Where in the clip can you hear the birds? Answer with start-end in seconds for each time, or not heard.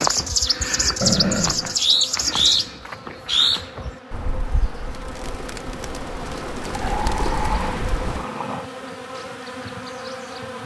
0.0-8.2.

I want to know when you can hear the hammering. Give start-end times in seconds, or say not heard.
not heard.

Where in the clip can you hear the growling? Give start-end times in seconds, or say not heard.
1.0-1.8, 6.7-8.7.